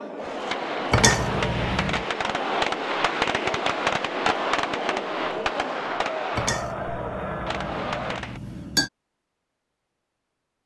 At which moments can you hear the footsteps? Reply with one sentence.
You can't hear the footsteps here.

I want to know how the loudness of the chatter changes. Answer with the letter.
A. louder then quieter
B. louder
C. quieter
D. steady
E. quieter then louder
D.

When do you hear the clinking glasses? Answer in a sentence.
The clinking glasses can be heard from 0.9 to 2.0 s and from 6.3 to 8.9 s.